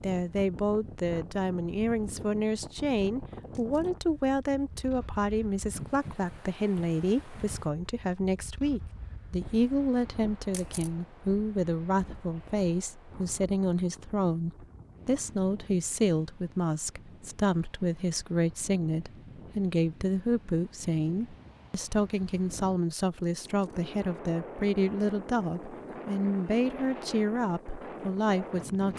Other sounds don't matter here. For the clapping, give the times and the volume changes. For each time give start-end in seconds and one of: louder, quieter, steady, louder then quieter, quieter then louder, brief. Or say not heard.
not heard.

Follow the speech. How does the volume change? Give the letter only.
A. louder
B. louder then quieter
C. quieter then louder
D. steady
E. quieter
D.